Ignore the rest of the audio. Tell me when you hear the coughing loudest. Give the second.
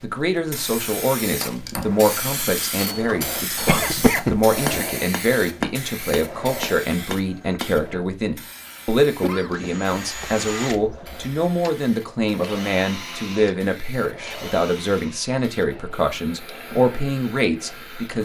4 s.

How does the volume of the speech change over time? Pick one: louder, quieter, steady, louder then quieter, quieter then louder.
steady.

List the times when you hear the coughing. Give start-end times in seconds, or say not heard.
3.0-4.8, 9.2-9.7.